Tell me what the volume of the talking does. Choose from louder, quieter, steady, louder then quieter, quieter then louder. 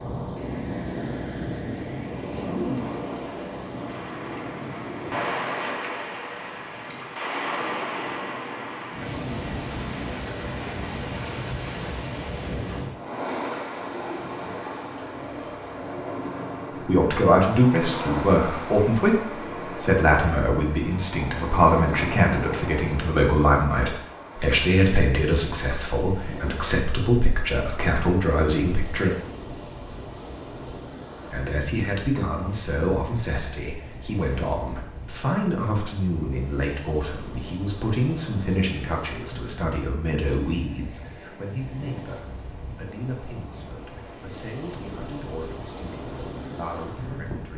quieter.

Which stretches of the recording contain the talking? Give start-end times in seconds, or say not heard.
16.9-29.1, 31.3-47.5.